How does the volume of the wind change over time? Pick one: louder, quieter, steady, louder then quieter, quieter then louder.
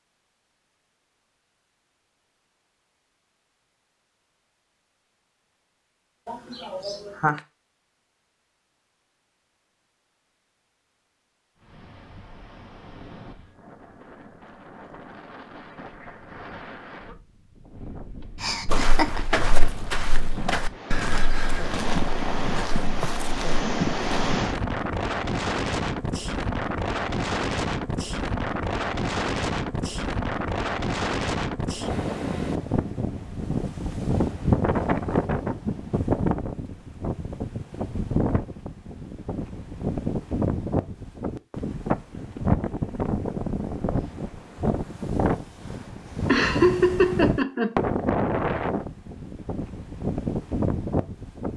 louder.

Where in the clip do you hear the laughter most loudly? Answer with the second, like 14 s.
47 s.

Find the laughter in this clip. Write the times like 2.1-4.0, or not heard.
6.2-7.4, 18.4-19.2, 46.2-47.8.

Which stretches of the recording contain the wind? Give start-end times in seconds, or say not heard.
11.6-51.5.